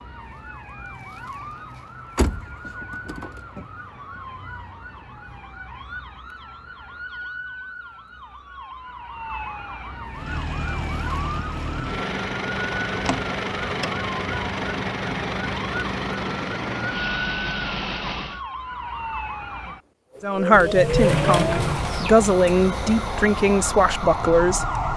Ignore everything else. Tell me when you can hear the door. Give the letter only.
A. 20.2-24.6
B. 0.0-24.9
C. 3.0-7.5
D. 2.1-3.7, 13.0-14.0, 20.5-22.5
D.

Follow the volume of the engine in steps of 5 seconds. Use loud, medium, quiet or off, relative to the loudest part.
off, off, loud, loud, medium.